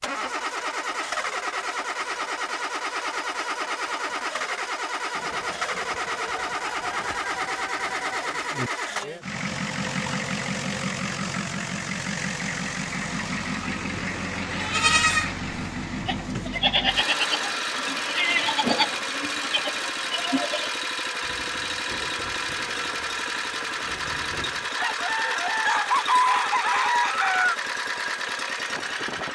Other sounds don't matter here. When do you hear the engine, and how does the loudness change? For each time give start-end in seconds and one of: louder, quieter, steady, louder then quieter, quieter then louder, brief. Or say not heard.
0.0-29.3 steady.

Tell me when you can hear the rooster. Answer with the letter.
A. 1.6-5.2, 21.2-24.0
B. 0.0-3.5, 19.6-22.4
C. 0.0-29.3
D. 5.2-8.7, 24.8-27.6
D.